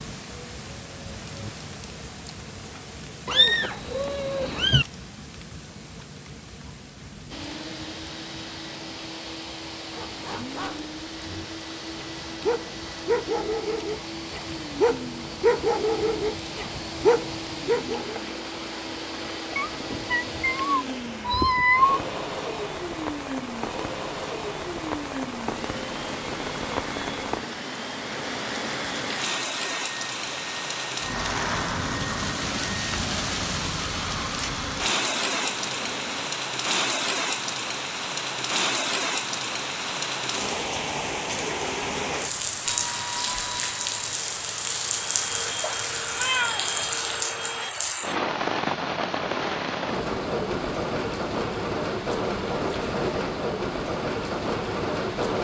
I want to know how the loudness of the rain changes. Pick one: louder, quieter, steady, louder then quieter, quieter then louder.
louder.